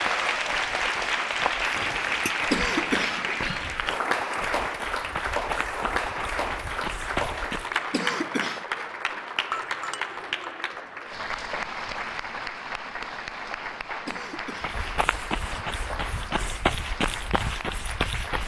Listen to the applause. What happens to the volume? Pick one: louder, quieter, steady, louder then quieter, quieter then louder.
quieter.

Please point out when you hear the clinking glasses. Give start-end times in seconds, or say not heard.
1.7-2.4, 9.5-10.3.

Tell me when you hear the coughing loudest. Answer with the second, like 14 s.
3 s.